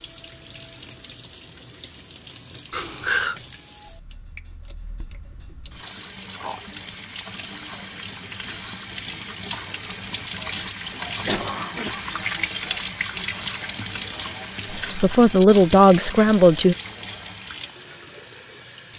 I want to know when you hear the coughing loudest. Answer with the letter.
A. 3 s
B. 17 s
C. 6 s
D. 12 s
A.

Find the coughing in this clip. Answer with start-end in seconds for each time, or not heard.
2.7-3.4, 11.2-12.1.